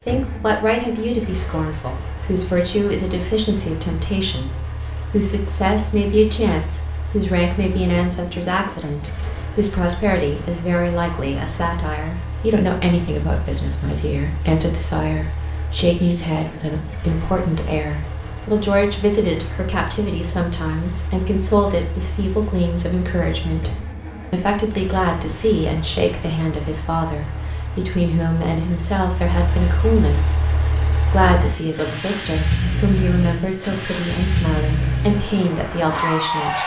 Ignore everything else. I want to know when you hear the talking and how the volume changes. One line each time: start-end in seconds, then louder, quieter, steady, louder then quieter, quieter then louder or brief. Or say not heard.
0.1-36.6 steady.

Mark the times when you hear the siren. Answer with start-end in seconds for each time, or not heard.
not heard.